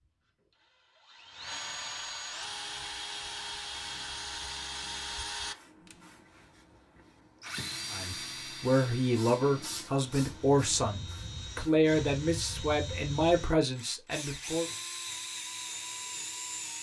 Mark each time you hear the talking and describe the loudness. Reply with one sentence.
The talking can be heard from 7.9 to 14.7 s, at a steady volume.